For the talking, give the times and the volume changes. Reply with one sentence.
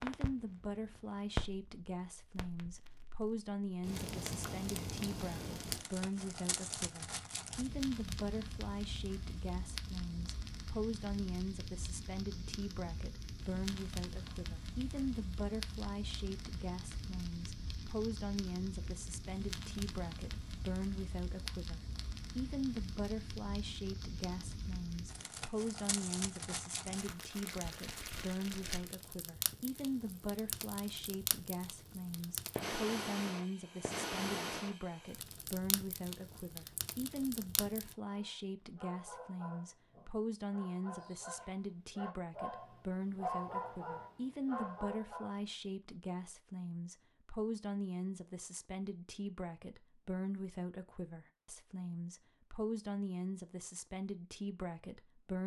The talking can be heard from 0.0 to 55.4 s, at a steady volume.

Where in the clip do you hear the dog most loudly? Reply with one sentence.
The volume of the dog peaks at 43 seconds.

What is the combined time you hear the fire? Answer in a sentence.
The fire can be heard for 38 seconds in total.